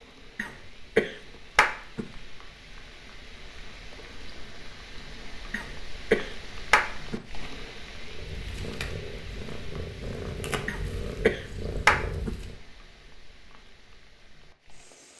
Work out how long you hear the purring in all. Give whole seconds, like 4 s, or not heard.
5 s.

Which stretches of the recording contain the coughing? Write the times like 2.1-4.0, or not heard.
0.3-2.2, 5.5-7.3, 10.7-12.5.